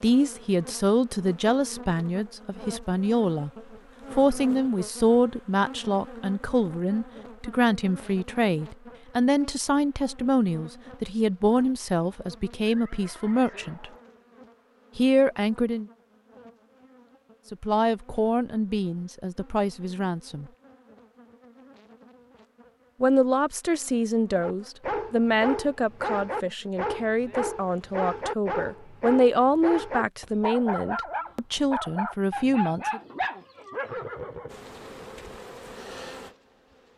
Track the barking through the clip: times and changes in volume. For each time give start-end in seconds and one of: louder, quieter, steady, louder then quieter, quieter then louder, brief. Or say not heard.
24.4-34.0 steady.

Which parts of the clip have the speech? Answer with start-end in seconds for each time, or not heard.
0.0-3.5, 4.1-13.9, 14.9-15.8, 17.5-20.4, 23.0-33.0.